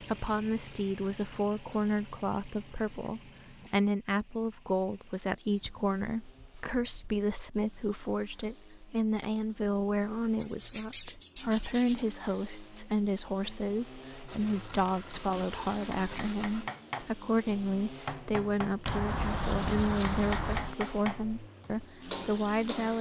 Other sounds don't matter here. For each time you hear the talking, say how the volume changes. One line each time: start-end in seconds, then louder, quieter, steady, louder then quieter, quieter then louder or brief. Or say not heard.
0.0-22.9 steady.